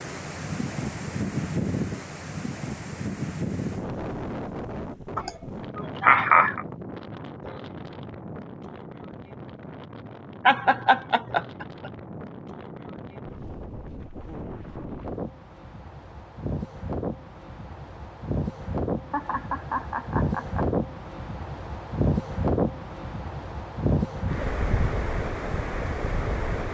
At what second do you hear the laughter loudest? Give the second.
6 s.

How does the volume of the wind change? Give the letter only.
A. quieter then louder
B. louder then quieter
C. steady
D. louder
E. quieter
A.